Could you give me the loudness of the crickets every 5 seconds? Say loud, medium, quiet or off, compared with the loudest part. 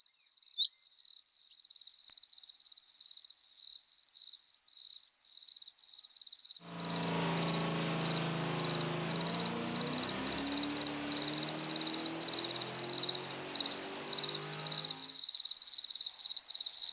quiet, medium, loud, loud.